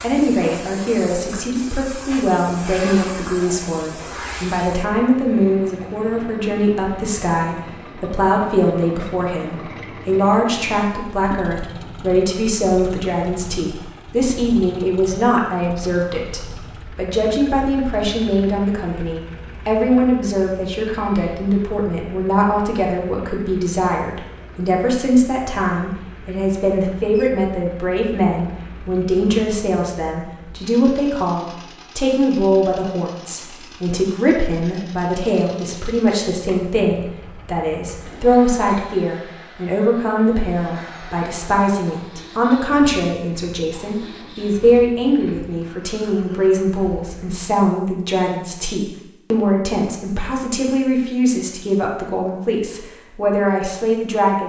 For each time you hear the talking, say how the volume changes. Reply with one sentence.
You can hear the talking from 0.0 to 54.4 s, at a steady volume.